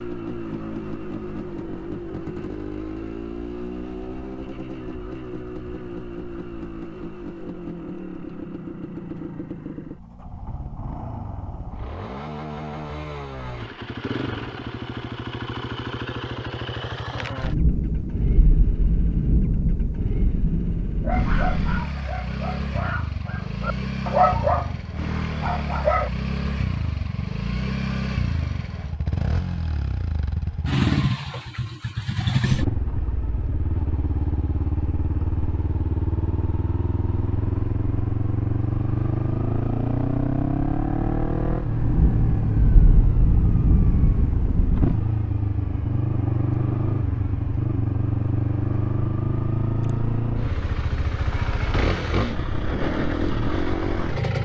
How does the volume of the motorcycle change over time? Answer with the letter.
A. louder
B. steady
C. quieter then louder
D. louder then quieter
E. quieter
A.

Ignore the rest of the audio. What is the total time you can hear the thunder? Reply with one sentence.
The thunder can be heard for 8 seconds in total.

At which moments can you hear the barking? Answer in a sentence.
The barking can be heard from 20.9 to 26.1 s.